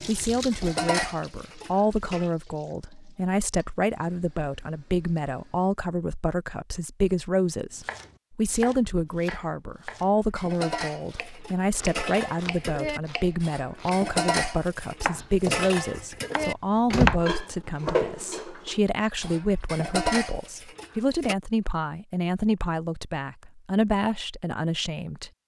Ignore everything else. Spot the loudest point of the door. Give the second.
17 s.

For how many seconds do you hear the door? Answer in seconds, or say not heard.
2 s.